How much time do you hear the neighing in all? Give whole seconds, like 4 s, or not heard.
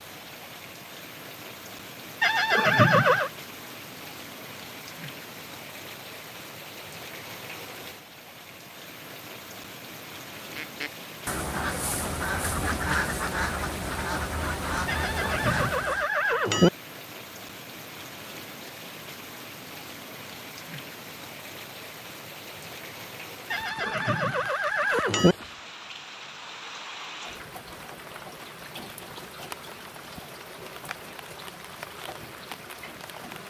5 s.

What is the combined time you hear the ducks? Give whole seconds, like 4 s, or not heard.
6 s.